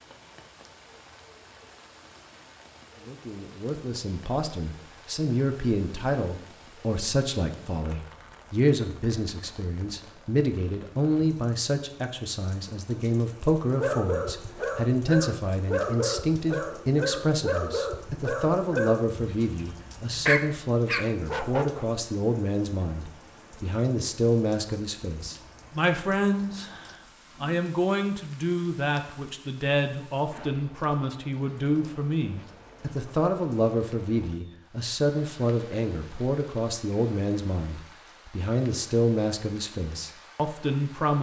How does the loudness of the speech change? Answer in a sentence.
The volume of the speech stays about the same.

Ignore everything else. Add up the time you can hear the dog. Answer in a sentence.
The dog can be heard for 8 seconds in total.